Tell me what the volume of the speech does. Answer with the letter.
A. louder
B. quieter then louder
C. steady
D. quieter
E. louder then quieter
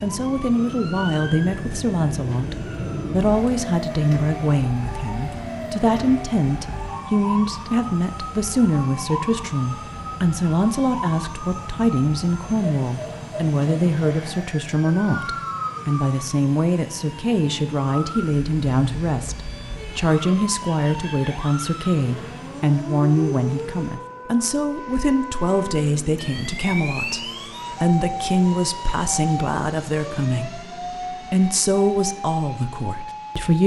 C.